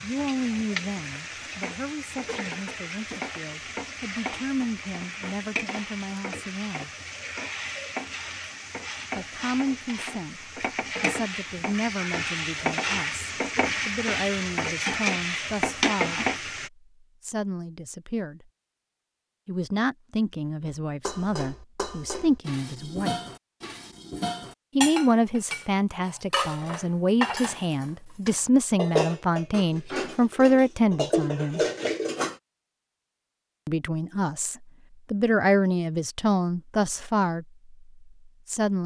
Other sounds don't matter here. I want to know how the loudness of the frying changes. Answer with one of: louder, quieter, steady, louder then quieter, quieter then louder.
louder.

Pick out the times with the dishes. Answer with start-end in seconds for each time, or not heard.
20.6-32.4.